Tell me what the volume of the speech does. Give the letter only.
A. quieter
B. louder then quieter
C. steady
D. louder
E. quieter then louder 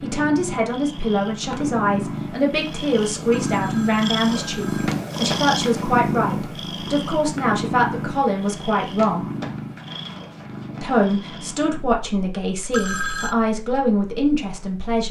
C.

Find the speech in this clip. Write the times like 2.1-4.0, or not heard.
0.0-9.2, 10.8-15.0.